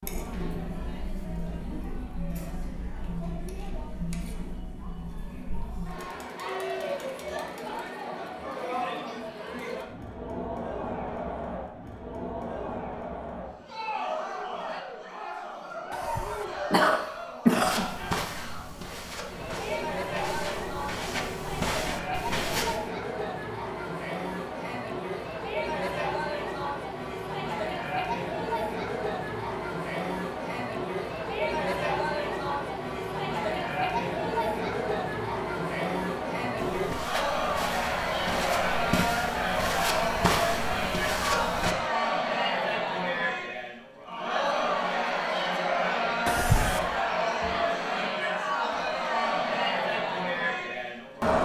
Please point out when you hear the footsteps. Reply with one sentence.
You can hear the footsteps from 17.6 to 22.8 s and from 36.5 to 41.8 s.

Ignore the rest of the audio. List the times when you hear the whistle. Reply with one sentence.
You can't hear the whistle here.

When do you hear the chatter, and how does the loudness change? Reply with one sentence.
The chatter can be heard from 0.0 to 51.4 s, getting louder.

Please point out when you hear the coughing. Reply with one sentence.
You can hear the coughing from 15.9 to 17.9 s and from 46.2 to 47.0 s.